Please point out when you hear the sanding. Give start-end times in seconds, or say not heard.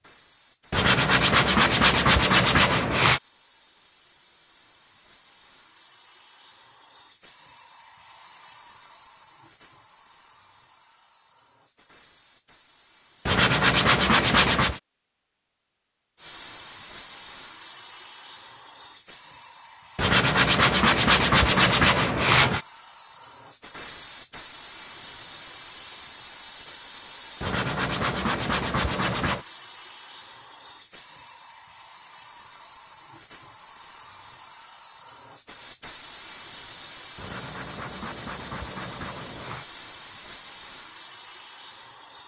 0.7-3.2, 13.2-14.8, 19.9-22.6, 27.4-29.4, 37.1-39.6.